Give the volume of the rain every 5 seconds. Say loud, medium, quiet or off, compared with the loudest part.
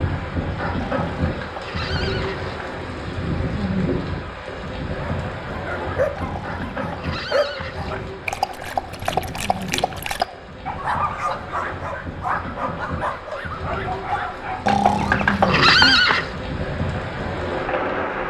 loud, medium, medium, loud.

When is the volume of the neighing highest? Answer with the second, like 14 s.
16 s.